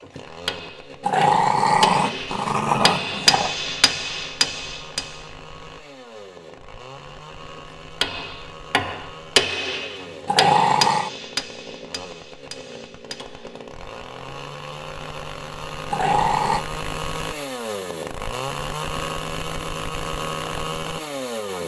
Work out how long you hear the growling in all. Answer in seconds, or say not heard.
4 s.